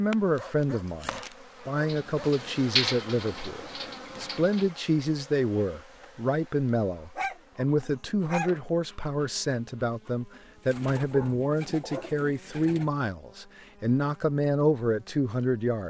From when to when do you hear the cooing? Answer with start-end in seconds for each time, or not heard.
1.9-4.7, 10.3-12.9.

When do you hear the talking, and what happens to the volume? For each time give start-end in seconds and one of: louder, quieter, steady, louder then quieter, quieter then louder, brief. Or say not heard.
0.0-15.8 steady.